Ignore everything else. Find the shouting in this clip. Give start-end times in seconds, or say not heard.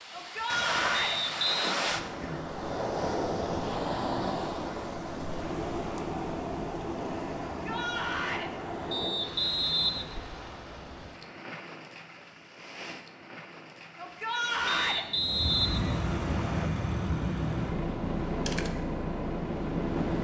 0.1-1.2, 7.5-8.5, 13.9-15.1.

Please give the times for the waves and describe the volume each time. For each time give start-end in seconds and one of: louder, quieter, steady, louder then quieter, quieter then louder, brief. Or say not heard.
0.0-20.1 quieter then louder.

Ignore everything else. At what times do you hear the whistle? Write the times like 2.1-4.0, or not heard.
0.9-1.8, 8.9-10.1, 14.7-16.7.